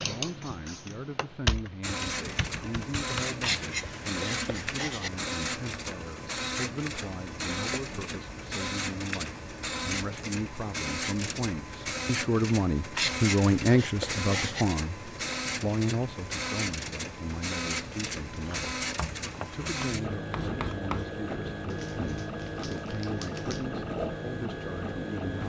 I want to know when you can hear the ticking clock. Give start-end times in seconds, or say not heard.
not heard.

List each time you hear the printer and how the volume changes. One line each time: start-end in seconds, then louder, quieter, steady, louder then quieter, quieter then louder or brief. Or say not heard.
1.8-25.4 steady.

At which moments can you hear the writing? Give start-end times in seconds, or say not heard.
3.4-5.1, 12.9-14.7, 18.4-21.1.